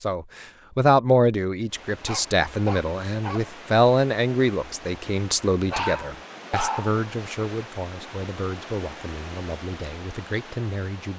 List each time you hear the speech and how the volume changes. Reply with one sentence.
The speech can be heard from 0.0 to 11.1 s, getting quieter.